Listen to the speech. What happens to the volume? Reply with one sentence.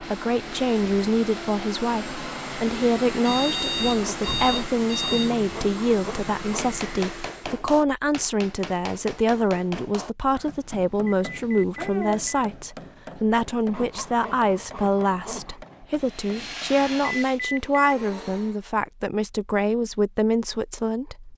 The loudness of the speech stays about the same.